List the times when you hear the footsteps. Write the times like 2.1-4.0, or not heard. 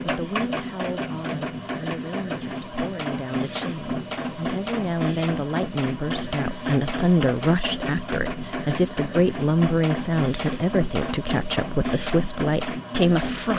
not heard.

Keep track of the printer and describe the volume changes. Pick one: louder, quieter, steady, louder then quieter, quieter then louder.
steady.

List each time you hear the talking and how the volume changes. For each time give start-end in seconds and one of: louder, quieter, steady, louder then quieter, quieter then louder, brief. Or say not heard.
0.0-13.5 louder.